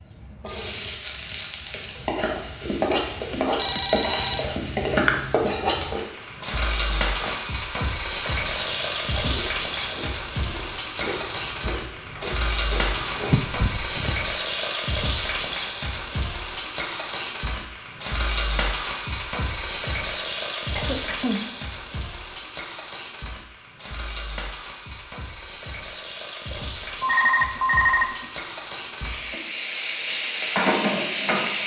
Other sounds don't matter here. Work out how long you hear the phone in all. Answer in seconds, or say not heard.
3 s.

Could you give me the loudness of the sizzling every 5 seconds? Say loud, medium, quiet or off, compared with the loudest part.
loud, loud, loud, loud, medium, medium, loud.